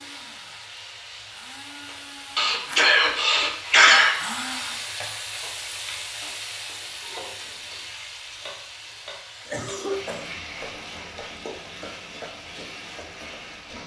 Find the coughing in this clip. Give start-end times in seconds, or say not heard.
2.4-4.2, 9.4-10.2.